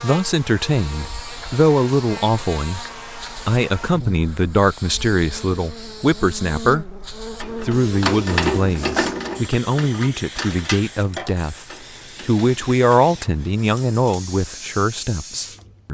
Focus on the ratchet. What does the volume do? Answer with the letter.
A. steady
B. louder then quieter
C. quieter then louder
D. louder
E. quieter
E.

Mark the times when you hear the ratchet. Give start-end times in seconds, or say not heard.
7.4-12.8.